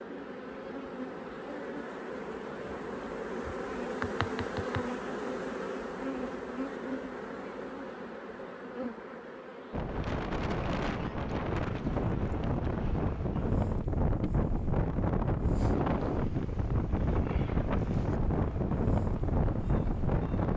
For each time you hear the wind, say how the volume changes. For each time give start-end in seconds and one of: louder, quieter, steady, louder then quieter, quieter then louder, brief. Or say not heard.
9.7-20.5 steady.